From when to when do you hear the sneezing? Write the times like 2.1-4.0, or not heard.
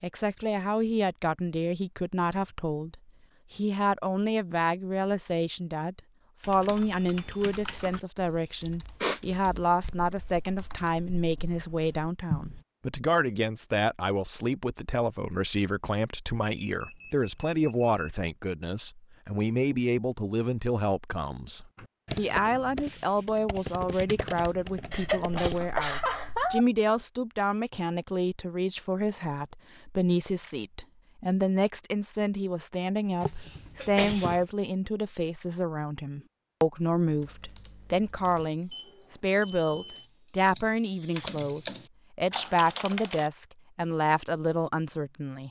8.6-9.2, 24.9-26.6, 33.2-34.5.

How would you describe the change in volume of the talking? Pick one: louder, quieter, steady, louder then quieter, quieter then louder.
steady.